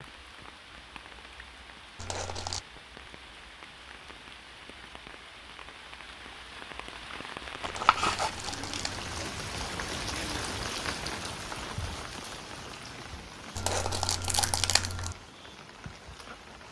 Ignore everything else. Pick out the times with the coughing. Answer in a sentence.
The coughing can't be heard in this clip.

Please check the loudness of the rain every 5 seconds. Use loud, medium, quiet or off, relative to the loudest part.
medium, loud, loud, medium.